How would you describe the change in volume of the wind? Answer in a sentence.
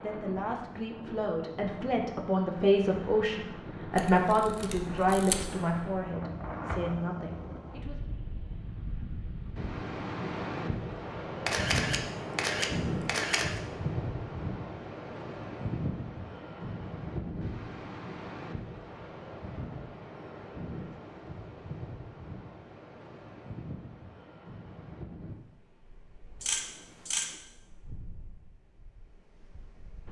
The volume of the wind goes up, then down.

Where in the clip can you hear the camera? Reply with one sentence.
The camera can be heard from 4.0 to 5.5 s, from 11.4 to 13.6 s and from 26.4 to 27.4 s.